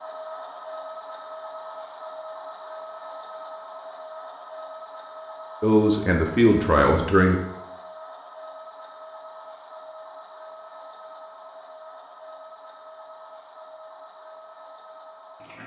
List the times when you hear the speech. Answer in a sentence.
The speech can be heard from 5.6 to 7.4 s.